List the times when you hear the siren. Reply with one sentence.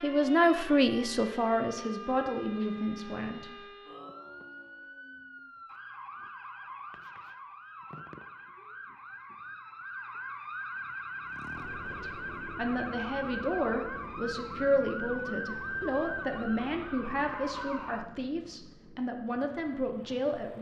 You can hear the siren from 0.0 to 18.1 s.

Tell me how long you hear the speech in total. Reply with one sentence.
You can hear the speech for 12 seconds altogether.